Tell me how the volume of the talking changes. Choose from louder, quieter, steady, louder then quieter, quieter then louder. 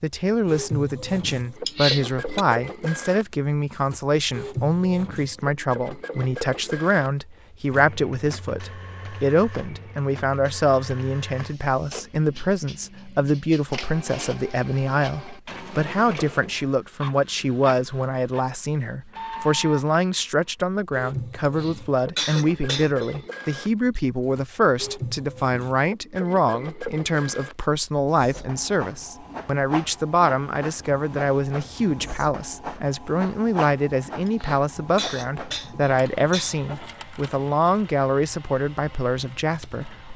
steady.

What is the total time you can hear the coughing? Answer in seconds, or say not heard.
5 s.